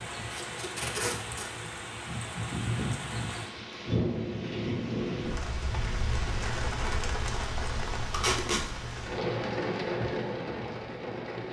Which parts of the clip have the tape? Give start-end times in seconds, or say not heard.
0.3-1.5, 8.1-8.7.